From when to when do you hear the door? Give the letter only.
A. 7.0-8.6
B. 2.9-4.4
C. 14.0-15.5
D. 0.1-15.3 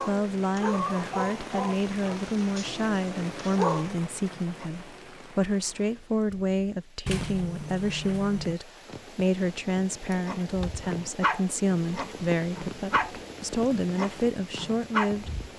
A.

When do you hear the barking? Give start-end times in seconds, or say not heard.
0.0-4.7, 10.2-15.2.